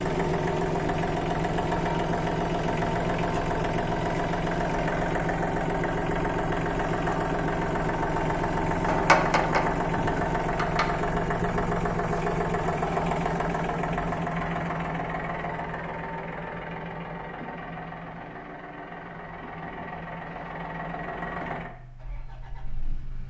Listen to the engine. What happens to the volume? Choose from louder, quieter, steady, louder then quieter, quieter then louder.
quieter.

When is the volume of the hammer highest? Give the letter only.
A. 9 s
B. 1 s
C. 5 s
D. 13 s
A.